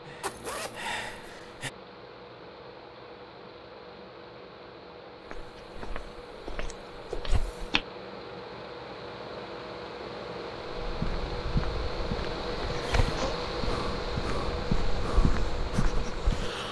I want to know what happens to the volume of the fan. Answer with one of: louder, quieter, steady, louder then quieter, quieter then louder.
louder.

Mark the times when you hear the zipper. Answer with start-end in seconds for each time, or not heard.
0.2-1.3, 12.7-13.3.